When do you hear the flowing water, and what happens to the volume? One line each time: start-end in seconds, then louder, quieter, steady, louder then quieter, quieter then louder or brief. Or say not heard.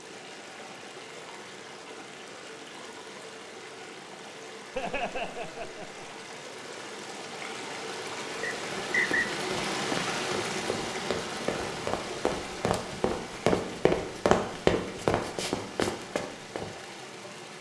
0.0-17.5 louder then quieter.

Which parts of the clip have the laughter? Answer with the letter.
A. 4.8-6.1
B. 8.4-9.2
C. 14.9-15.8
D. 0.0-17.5
A.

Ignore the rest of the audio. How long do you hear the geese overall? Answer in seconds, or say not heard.
not heard.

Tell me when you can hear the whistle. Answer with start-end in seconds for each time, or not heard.
8.4-9.2.